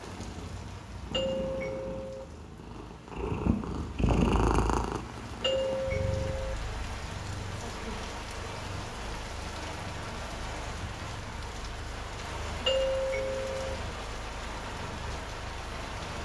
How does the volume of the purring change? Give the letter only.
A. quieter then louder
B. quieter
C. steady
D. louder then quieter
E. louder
D.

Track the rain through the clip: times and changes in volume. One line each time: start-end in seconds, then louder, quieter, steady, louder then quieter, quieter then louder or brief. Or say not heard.
0.0-16.2 louder.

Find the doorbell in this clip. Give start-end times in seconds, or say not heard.
1.1-2.2, 5.4-6.5, 12.7-13.8.